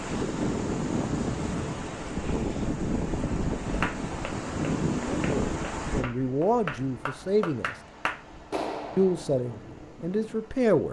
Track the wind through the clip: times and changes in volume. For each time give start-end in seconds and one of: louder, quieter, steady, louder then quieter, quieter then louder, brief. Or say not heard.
0.0-10.8 quieter.